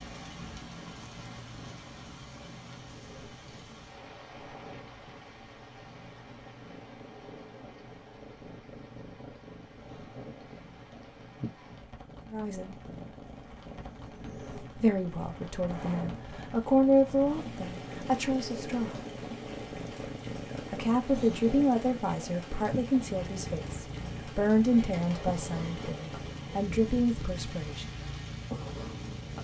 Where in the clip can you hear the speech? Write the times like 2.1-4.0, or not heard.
12.3-12.8, 14.8-18.9, 20.7-27.9.